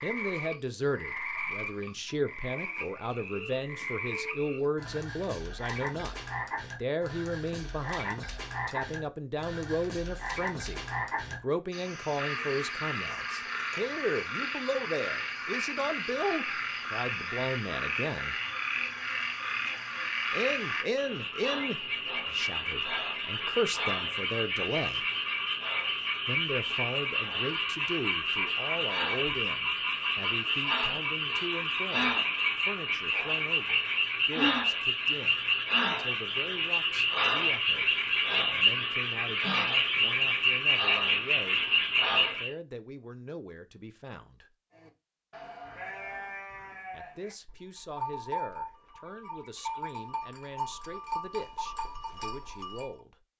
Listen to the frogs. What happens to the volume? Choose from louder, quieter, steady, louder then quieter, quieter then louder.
louder.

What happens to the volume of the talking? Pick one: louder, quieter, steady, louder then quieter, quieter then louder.
quieter.